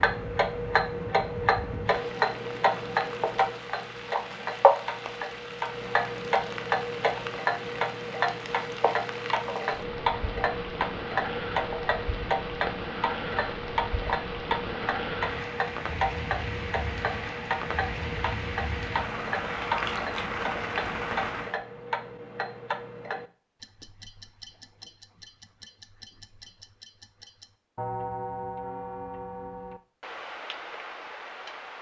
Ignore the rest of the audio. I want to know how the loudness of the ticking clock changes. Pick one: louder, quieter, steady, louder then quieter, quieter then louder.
quieter.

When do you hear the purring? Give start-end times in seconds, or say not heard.
not heard.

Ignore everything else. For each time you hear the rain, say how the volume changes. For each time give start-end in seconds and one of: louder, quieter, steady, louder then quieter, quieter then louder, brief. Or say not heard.
0.1-21.6 louder.